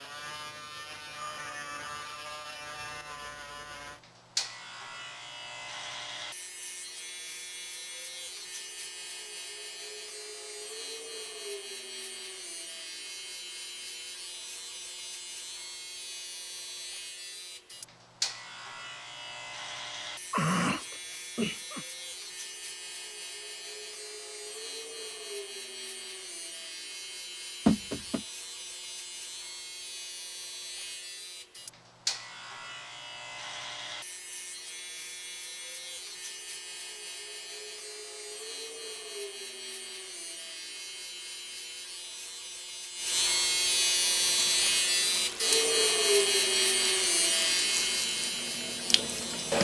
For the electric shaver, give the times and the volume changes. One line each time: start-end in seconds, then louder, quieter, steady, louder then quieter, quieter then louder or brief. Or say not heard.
0.0-49.5 louder.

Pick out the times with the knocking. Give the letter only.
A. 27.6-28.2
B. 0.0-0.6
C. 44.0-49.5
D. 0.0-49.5
A.